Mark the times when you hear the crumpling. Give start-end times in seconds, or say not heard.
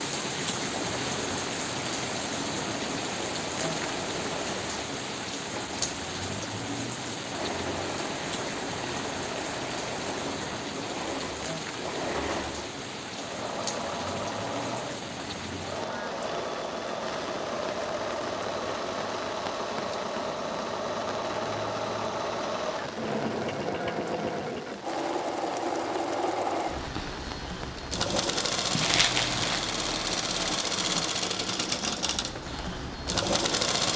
28.8-29.6.